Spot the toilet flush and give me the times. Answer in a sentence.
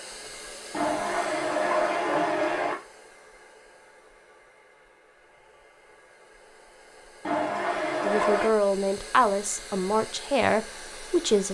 The toilet flush can be heard from 0.7 to 2.8 s and from 7.2 to 8.5 s.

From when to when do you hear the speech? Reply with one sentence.
The speech can be heard from 8.0 to 11.4 s.